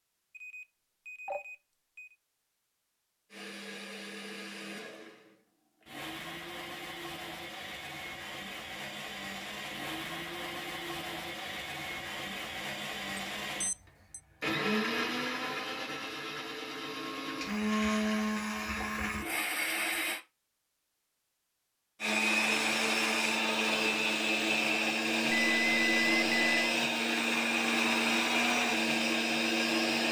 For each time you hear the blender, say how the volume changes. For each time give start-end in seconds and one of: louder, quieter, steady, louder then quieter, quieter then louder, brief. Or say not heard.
3.3-20.2 louder
22.0-30.0 steady.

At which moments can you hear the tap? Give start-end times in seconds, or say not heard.
not heard.